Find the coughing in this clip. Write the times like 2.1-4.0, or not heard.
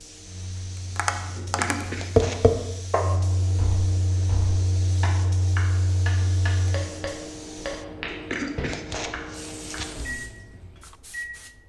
1.4-2.5, 8.1-10.1.